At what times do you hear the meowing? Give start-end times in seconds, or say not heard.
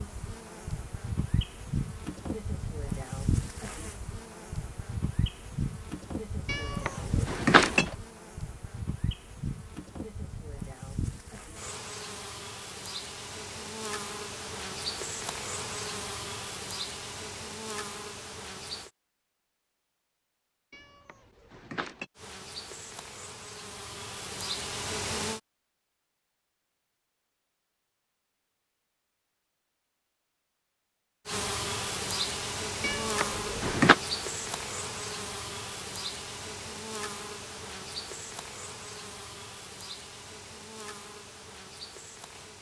6.5-8.0, 20.7-22.1, 32.8-34.0.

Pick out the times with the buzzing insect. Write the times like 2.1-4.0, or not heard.
0.0-18.9, 22.1-25.4, 31.2-42.5.